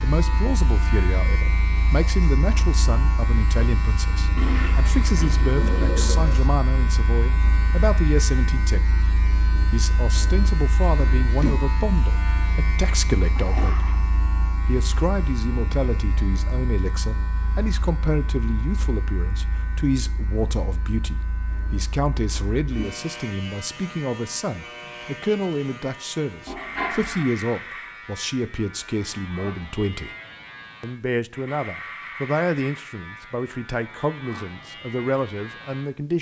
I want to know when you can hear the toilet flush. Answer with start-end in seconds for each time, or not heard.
4.3-6.4, 13.3-14.0, 26.4-27.2.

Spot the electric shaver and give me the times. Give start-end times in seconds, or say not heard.
0.0-36.1.